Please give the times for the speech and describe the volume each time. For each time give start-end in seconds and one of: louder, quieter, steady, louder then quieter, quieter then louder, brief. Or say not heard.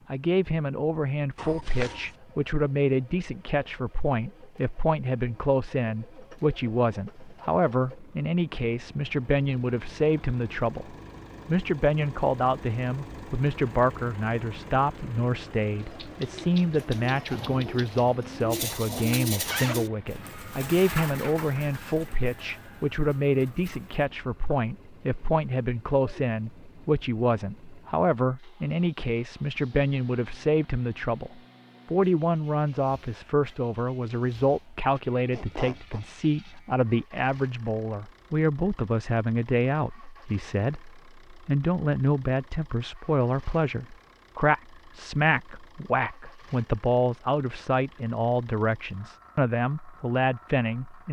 0.1-51.0 steady.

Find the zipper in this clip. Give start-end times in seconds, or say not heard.
1.4-2.1, 18.6-19.9, 35.3-36.0.